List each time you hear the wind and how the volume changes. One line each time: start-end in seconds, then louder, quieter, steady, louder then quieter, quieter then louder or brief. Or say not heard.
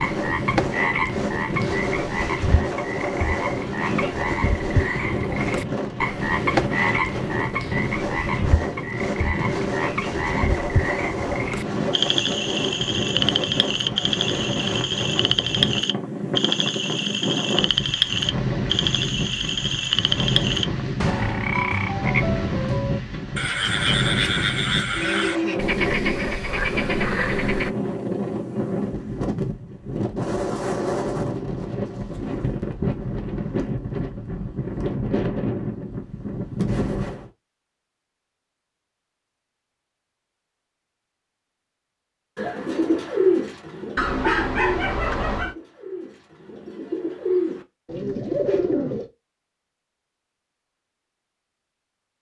0.0-37.3 steady.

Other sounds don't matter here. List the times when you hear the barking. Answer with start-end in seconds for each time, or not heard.
44.0-45.5.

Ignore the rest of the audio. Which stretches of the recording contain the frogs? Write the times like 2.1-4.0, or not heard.
0.0-27.7.